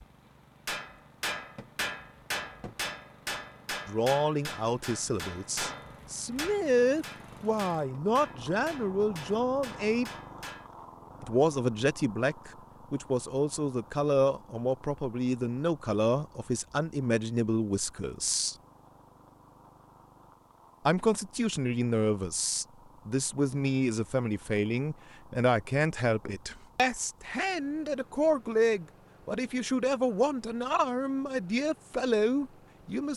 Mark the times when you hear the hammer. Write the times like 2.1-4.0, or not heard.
0.7-10.7.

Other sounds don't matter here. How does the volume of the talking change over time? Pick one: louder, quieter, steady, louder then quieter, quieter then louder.
steady.